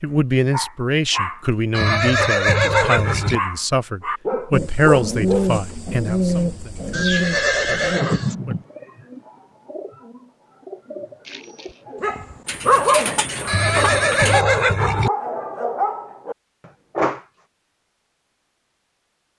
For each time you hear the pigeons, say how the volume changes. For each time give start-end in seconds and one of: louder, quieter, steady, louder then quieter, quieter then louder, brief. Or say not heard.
4.5-14.4 quieter then louder.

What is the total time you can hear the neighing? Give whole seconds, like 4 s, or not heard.
5 s.